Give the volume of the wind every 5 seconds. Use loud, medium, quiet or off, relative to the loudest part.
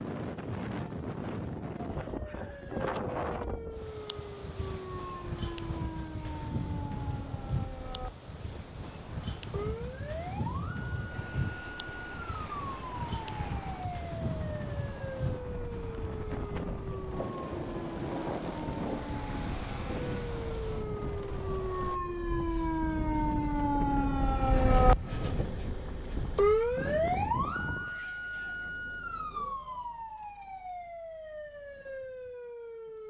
loud, loud, loud, loud, loud, loud, off.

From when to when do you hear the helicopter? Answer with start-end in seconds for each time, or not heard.
11.1-22.0.